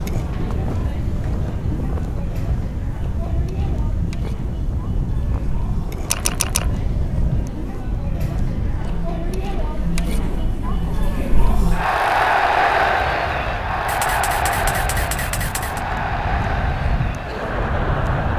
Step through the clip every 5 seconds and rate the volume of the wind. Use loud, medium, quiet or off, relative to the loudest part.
loud, loud, medium, loud.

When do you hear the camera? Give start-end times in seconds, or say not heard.
6.1-6.7, 13.8-15.8.